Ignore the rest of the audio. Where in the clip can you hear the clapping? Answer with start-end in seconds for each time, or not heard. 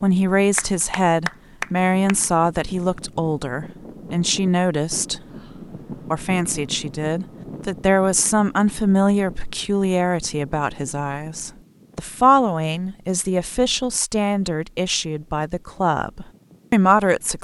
0.6-2.1.